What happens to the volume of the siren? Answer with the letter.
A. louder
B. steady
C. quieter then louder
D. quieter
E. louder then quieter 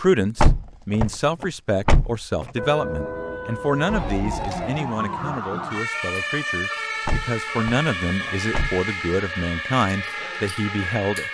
B.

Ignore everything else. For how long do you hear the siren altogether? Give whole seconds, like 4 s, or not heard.
9 s.